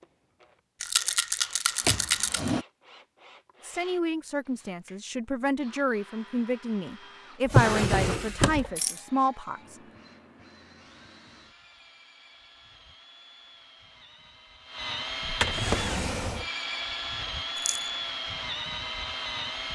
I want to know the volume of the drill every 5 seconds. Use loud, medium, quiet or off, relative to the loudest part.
quiet, quiet, quiet, loud.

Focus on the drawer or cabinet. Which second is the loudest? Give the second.
8 s.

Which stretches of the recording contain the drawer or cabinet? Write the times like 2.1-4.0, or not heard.
1.9-2.6, 7.5-8.7, 15.2-16.4.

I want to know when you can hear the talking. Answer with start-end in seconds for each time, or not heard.
3.6-9.8.